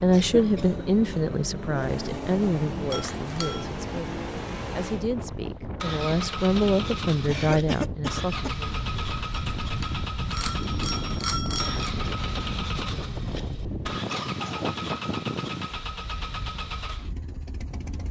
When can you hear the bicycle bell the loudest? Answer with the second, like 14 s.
11 s.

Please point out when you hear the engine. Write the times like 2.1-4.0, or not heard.
0.0-18.0.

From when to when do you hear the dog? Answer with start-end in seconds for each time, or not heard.
not heard.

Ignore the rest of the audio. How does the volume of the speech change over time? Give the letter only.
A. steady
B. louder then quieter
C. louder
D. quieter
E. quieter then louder
E.